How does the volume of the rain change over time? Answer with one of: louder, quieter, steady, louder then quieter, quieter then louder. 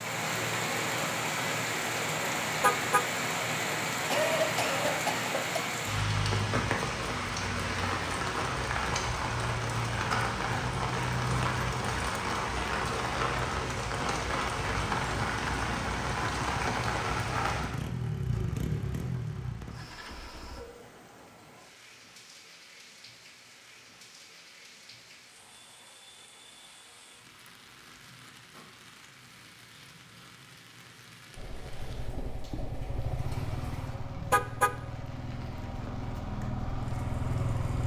quieter.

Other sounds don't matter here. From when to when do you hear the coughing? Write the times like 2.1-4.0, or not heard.
4.1-5.8.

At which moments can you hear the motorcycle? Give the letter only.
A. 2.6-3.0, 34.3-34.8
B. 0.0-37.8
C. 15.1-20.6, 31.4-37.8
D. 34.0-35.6
C.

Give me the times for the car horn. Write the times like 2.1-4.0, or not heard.
2.6-3.0, 34.3-34.8.